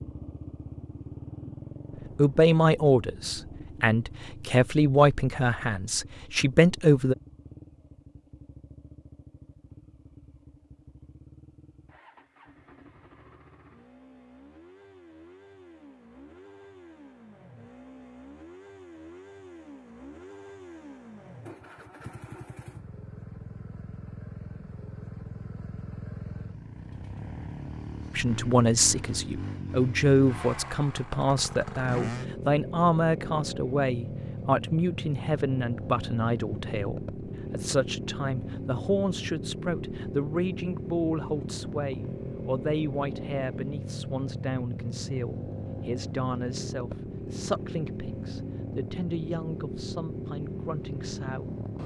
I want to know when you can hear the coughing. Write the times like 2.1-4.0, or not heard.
not heard.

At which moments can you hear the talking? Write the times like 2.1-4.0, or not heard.
2.1-7.2, 28.1-51.5.